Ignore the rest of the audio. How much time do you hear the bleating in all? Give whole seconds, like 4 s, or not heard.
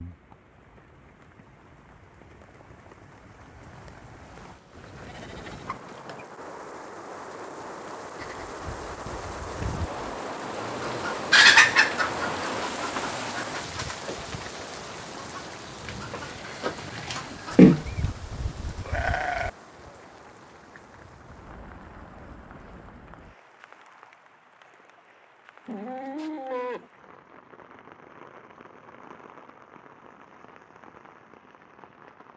7 s.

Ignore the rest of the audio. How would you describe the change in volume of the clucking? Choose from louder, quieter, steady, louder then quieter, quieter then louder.
quieter then louder.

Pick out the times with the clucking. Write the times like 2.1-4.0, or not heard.
10.6-17.9.